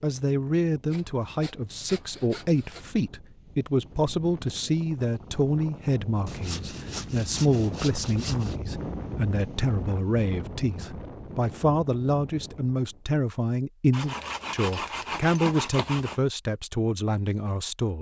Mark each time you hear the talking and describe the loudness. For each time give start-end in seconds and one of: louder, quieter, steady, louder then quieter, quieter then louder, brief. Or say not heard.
0.0-17.9 steady.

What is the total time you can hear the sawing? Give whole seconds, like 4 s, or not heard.
7 s.